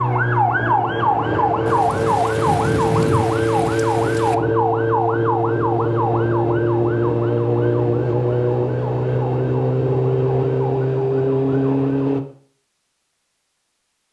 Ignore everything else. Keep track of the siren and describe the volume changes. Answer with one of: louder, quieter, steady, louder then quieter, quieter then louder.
steady.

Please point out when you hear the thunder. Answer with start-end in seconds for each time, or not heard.
1.6-4.3.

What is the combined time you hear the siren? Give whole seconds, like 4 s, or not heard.
12 s.